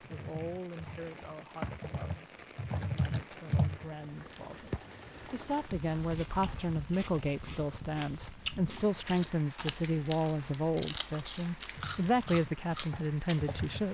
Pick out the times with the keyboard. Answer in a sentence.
You can hear the keyboard from 0.0 to 3.9 s and from 11.7 to 13.8 s.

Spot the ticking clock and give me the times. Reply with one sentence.
The ticking clock can't be heard in this clip.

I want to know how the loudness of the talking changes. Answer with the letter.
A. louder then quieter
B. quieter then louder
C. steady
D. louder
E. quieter
D.